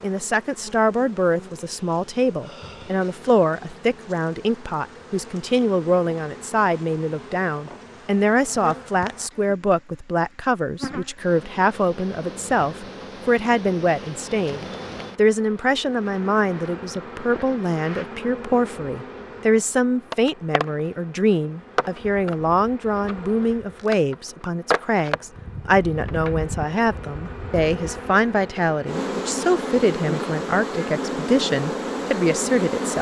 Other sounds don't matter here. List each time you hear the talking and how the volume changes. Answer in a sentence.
You can hear the talking from 0.0 to 32.9 s, at a steady volume.